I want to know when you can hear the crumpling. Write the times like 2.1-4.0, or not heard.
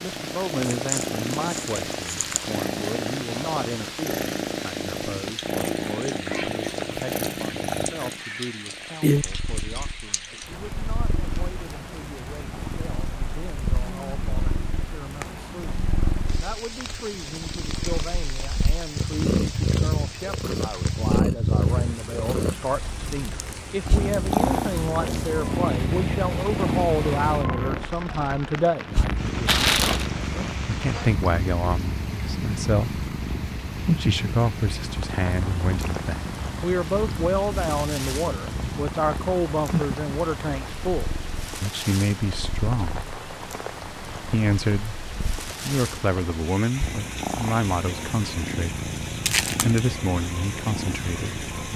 0.7-2.5, 29.4-30.1, 49.2-49.8.